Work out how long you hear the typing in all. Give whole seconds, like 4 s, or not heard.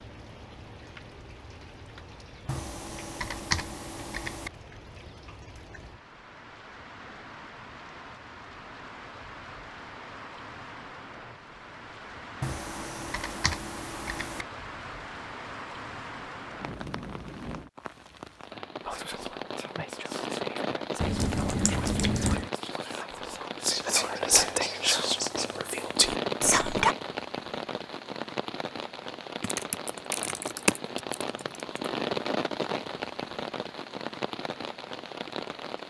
8 s.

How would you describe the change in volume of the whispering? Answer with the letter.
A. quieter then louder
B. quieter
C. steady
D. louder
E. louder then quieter
D.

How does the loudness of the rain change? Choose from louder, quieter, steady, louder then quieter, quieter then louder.
louder.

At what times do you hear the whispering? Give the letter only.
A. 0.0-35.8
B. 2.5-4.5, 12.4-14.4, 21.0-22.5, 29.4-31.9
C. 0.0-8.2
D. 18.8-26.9
D.